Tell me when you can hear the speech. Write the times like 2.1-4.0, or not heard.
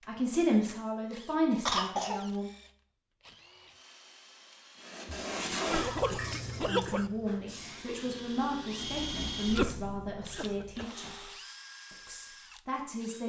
0.0-2.5, 6.7-11.3, 11.9-13.2.